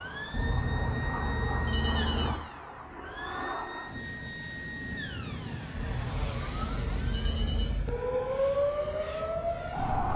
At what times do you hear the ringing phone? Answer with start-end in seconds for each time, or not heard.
0.3-2.4, 5.7-7.8.